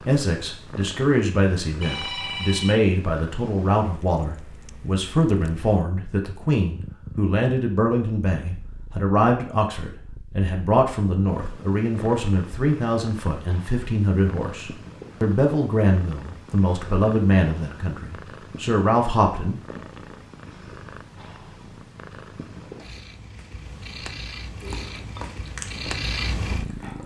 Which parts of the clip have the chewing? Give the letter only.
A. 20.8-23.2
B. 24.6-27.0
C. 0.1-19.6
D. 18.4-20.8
B.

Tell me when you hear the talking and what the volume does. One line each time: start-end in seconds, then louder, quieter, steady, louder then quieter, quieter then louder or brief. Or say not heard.
0.1-19.6 steady.